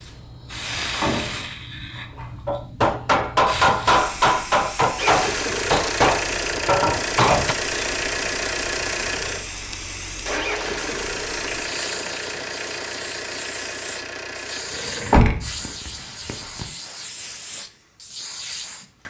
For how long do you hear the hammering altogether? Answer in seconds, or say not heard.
5 s.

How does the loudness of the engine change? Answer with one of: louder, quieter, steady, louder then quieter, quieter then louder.
quieter.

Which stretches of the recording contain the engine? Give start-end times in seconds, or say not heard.
5.0-15.2.